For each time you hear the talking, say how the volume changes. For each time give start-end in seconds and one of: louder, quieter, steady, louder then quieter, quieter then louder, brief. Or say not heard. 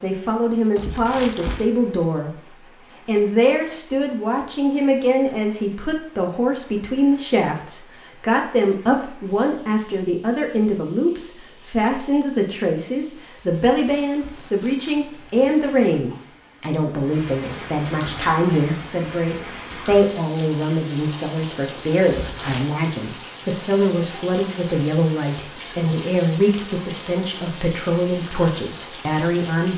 0.0-29.7 steady.